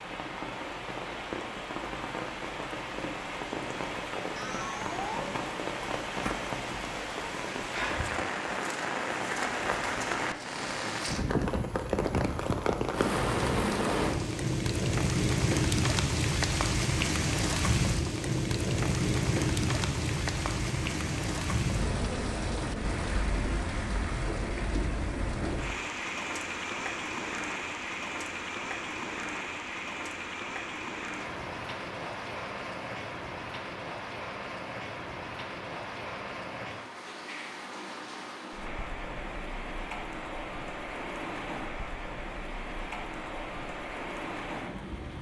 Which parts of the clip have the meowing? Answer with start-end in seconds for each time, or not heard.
4.3-5.5.